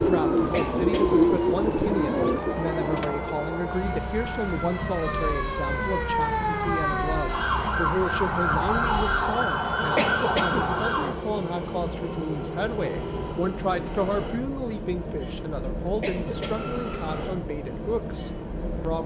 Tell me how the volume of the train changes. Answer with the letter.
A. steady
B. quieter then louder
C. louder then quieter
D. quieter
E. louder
A.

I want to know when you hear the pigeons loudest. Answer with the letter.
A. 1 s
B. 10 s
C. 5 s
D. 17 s
A.